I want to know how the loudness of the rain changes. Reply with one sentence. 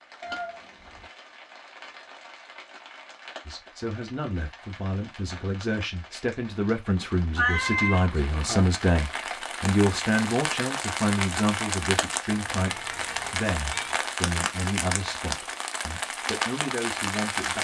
The volume of the rain goes up.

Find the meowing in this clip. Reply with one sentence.
The meowing can be heard from 0.2 to 1.1 s, from 7.3 to 8.8 s and from 12.3 to 14.0 s.